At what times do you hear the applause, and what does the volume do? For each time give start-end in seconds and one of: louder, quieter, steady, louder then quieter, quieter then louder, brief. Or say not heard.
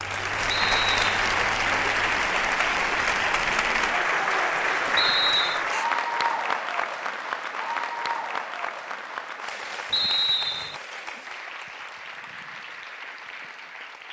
0.0-14.0 quieter.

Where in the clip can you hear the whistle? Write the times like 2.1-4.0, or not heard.
0.5-1.4, 5.0-5.6, 9.9-10.8.